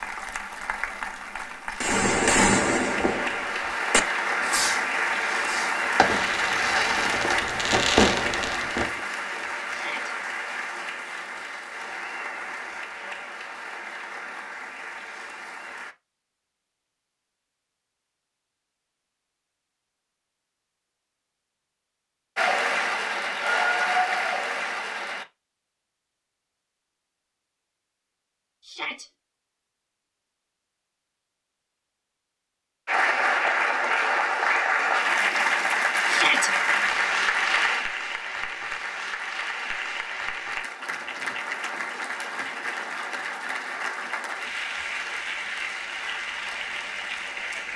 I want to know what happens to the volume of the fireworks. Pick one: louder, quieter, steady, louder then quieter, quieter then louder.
quieter then louder.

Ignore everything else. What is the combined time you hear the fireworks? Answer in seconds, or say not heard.
7 s.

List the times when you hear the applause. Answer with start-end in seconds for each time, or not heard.
0.0-15.9, 22.4-25.2, 32.9-47.7.